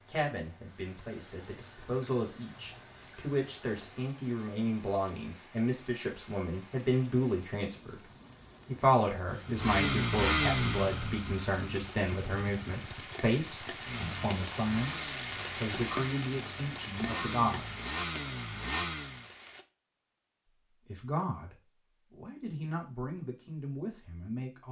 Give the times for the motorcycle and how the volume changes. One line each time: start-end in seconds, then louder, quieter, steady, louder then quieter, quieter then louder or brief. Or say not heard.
9.3-19.2 quieter then louder.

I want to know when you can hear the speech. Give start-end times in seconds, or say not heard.
0.1-8.0, 8.7-18.0, 20.6-24.6.